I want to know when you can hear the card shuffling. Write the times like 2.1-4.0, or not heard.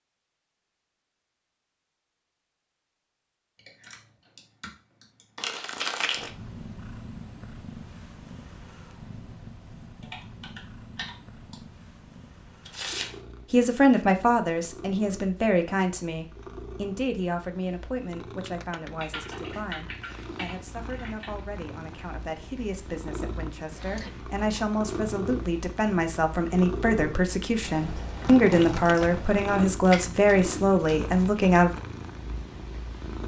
5.4-6.3, 12.7-13.2, 29.7-31.4.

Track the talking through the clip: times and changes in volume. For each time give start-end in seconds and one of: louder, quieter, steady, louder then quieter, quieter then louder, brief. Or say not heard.
13.5-31.7 quieter then louder.